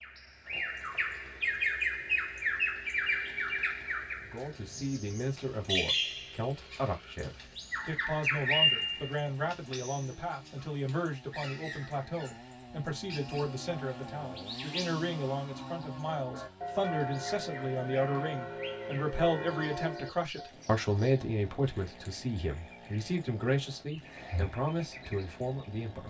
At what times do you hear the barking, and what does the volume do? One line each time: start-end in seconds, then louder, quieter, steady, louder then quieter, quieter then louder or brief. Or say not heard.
not heard.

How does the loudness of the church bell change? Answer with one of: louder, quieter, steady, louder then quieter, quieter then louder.
louder.